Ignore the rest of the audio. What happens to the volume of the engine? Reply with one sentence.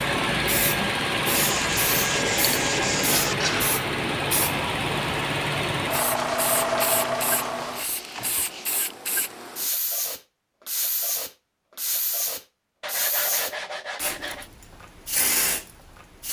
The volume of the engine stays about the same.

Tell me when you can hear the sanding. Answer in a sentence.
You can hear the sanding from 1.3 to 3.4 s, from 6.2 to 8.7 s and from 12.8 to 14.5 s.